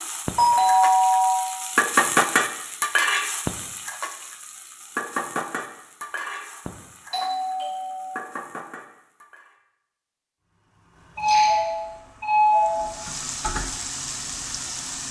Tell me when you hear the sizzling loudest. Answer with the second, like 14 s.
2 s.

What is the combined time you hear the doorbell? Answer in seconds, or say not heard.
4 s.